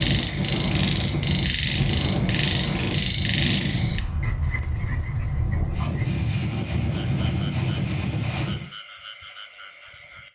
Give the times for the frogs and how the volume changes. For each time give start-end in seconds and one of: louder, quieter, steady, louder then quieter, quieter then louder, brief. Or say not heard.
0.0-10.3 quieter.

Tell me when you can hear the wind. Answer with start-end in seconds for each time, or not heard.
0.0-8.7.